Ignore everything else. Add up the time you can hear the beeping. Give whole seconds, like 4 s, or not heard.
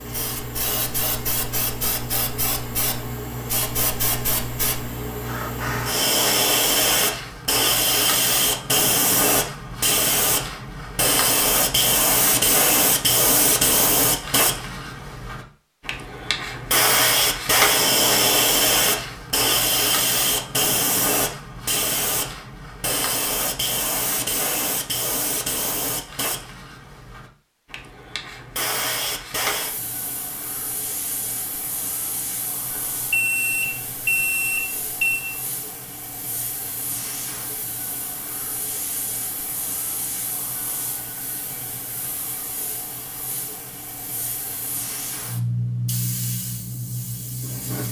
2 s.